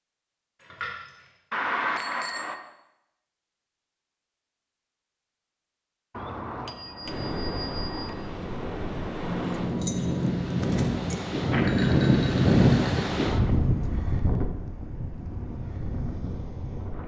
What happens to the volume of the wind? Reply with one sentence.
The loudness of the wind goes up, then down.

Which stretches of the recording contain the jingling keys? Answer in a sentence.
You can hear the jingling keys from 0.6 to 1.4 s and from 9.2 to 11.2 s.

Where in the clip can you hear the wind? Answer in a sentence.
You can hear the wind from 7.0 to 17.0 s.